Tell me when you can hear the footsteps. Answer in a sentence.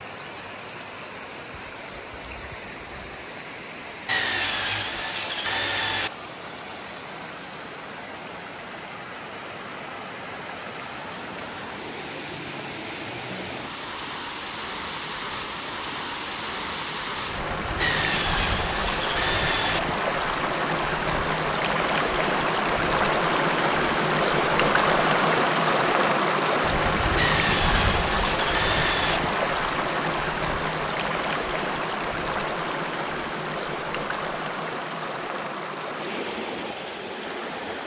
The footsteps can't be heard in this clip.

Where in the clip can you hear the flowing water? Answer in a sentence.
The flowing water can be heard from 0.0 to 37.8 s.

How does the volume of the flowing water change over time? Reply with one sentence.
The loudness of the flowing water goes up, then down.